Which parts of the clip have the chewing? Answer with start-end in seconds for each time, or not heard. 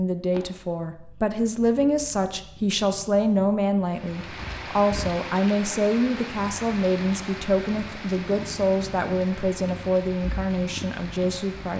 not heard.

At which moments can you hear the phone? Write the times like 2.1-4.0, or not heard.
not heard.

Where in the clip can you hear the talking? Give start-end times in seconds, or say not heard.
0.0-11.7.